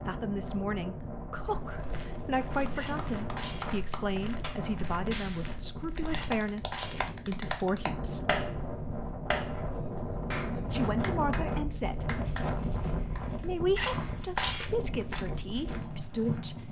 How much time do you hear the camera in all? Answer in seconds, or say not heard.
3 s.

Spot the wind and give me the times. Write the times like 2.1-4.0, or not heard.
0.0-16.6.